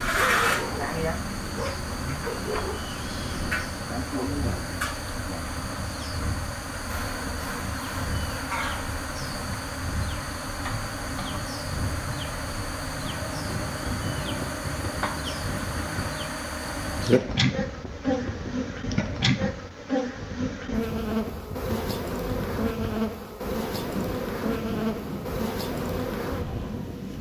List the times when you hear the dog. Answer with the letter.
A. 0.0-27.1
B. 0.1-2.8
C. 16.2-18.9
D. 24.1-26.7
B.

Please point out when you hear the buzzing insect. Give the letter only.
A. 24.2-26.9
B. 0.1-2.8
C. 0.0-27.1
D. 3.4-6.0
C.